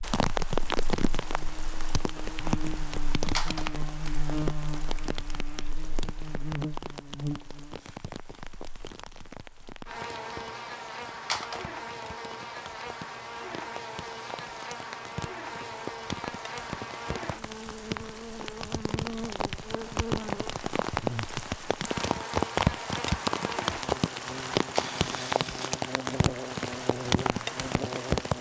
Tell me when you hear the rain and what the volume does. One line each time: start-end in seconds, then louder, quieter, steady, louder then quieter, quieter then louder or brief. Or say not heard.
0.0-28.3 quieter then louder.